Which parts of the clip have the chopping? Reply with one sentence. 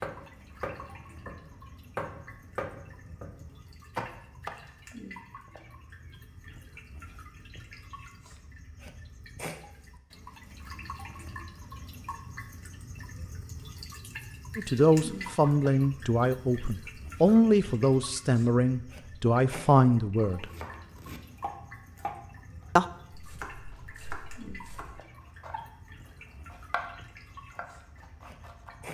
You can hear the chopping from 0.0 to 4.5 s, from 20.4 to 25.6 s, from 26.5 to 26.9 s and from 27.6 to 28.9 s.